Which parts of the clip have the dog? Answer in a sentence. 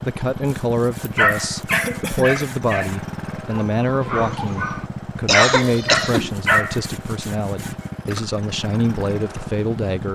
You can hear the dog from 1.1 to 6.8 s.